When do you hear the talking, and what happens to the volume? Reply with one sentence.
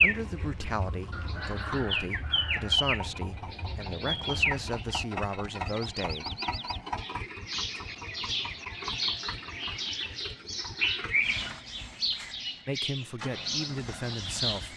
The talking can be heard from 0.0 to 6.2 s, at a steady volume; and briefly from 12.7 to 14.7 s.